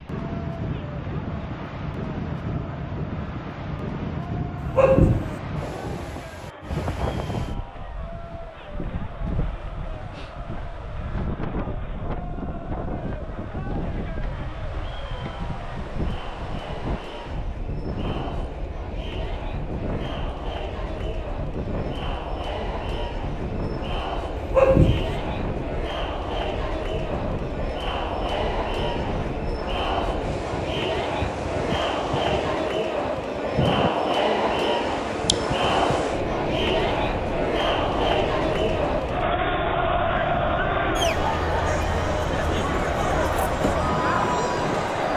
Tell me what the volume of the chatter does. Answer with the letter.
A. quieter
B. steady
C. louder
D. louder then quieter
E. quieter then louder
C.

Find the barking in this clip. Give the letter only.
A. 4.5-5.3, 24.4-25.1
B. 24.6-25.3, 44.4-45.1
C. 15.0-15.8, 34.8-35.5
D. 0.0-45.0
A.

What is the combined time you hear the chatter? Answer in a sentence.
You can hear the chatter for 45 seconds altogether.